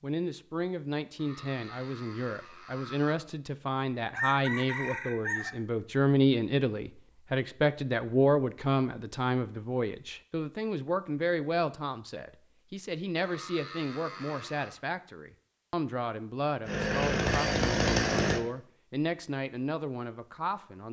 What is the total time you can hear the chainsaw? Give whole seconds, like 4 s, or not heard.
2 s.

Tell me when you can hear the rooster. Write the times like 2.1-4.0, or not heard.
4.1-5.5.